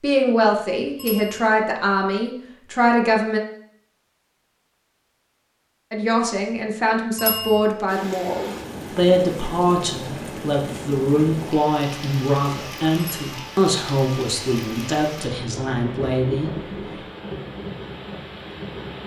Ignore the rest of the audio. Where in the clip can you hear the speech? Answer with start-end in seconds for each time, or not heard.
0.0-3.4, 5.9-17.0.